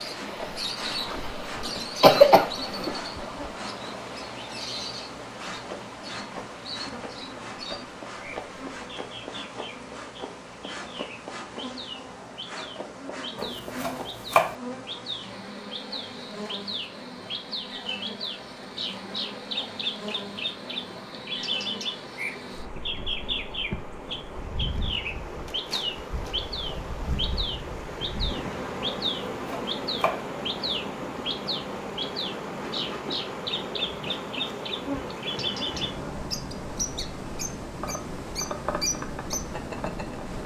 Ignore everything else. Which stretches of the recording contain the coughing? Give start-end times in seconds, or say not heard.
1.1-2.9.